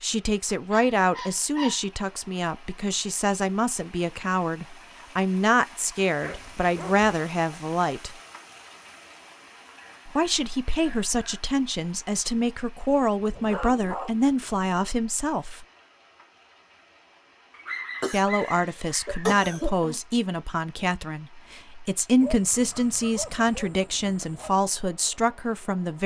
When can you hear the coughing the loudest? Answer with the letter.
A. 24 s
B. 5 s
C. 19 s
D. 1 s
C.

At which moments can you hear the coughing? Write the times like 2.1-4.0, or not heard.
18.0-20.0.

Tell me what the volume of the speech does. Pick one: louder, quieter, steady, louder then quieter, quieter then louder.
steady.